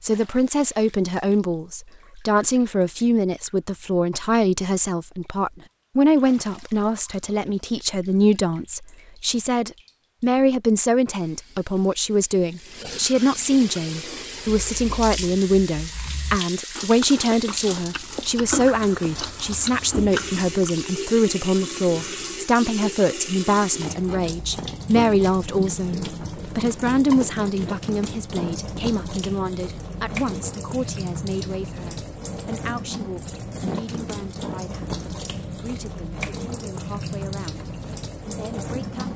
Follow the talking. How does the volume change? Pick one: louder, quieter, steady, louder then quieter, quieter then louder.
quieter.